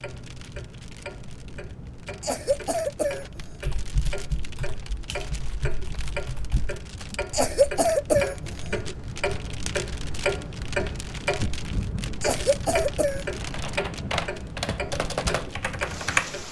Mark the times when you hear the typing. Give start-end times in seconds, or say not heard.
3.2-7.0, 13.3-16.4.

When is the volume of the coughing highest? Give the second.
8 s.